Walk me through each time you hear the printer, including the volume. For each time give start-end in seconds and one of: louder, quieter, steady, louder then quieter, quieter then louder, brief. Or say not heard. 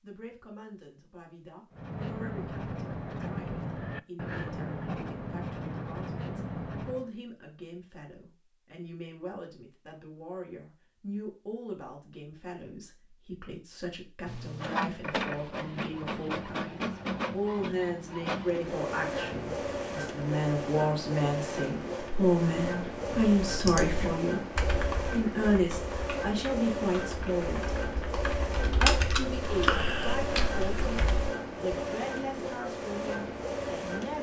14.2-34.1 steady.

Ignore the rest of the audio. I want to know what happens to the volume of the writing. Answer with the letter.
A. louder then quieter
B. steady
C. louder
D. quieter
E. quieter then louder
B.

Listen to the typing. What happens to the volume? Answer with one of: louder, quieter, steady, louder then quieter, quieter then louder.
quieter then louder.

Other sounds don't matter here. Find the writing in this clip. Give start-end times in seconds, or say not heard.
1.7-7.1.